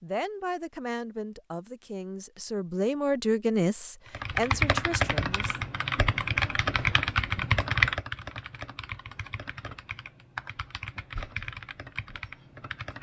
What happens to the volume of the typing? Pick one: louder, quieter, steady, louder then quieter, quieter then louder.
quieter.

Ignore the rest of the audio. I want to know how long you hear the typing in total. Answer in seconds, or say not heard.
9 s.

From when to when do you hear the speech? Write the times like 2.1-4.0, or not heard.
0.0-5.6.